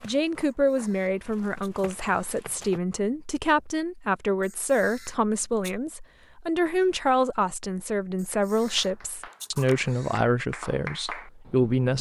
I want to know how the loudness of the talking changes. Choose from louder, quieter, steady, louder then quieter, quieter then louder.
steady.